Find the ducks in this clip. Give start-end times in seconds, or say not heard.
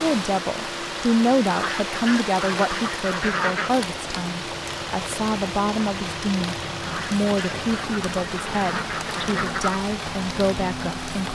1.4-3.7, 6.8-9.8.